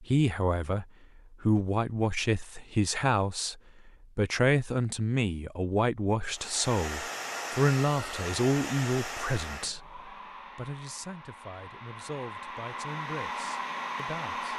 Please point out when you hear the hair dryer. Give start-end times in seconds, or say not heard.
6.3-14.5.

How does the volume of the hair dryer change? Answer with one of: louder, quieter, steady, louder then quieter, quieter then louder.
quieter then louder.